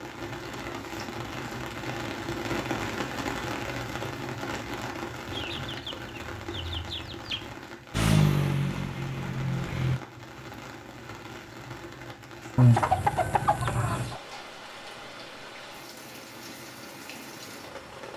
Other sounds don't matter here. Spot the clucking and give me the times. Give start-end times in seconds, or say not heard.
5.2-7.5, 12.6-14.2.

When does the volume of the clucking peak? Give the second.
13 s.